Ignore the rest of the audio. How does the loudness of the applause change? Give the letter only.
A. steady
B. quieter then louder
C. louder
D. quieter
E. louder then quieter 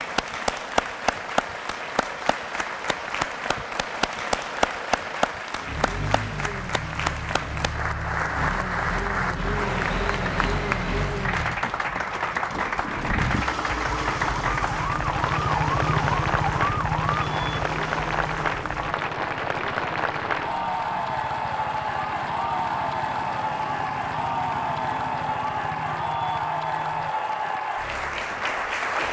A.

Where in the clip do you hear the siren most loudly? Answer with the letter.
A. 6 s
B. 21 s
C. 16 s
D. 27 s
C.